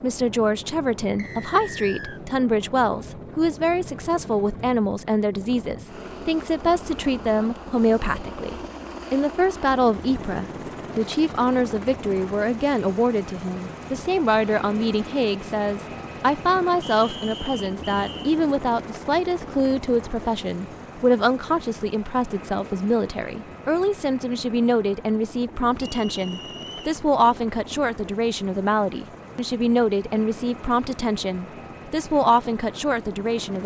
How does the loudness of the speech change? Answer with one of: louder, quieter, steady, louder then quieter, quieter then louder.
steady.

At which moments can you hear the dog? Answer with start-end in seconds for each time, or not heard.
not heard.